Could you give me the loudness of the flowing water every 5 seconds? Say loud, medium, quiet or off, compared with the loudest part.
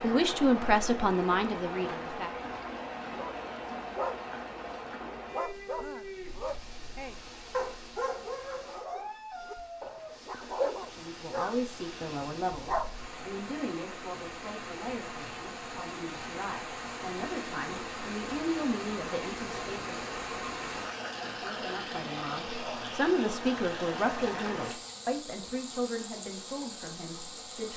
loud, medium, medium, loud, loud, medium.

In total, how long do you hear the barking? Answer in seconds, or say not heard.
9 s.